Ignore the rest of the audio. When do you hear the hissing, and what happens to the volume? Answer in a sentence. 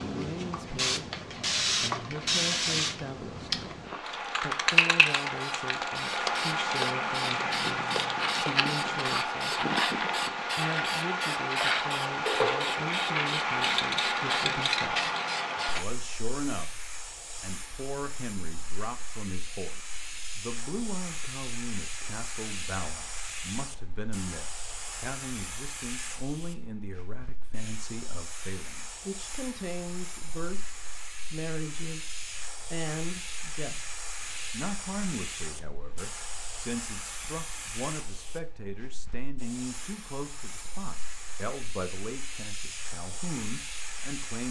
You can hear the hissing from 0.0 to 44.4 s, getting quieter.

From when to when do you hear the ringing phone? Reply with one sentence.
The ringing phone can't be heard in this clip.